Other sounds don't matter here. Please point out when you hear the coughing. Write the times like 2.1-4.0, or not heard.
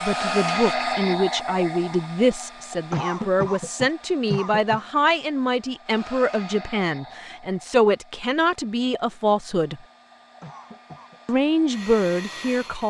2.9-4.8, 10.4-11.2.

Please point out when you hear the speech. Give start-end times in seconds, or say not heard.
0.0-9.8, 11.2-12.8.